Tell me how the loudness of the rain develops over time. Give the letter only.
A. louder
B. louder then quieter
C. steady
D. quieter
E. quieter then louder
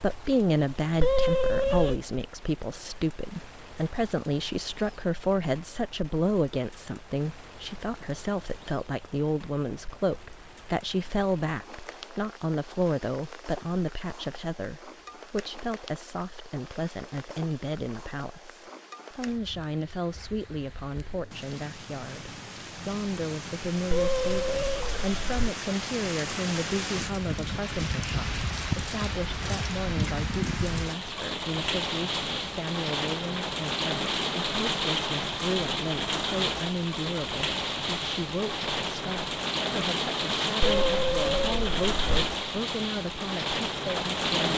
A.